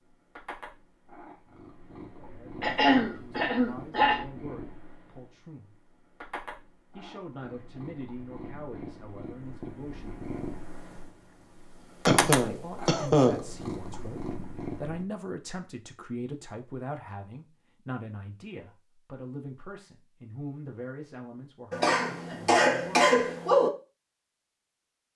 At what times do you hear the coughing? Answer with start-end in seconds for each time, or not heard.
2.6-4.2, 12.1-13.4, 21.7-23.7.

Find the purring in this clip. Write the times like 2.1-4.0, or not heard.
0.0-15.1.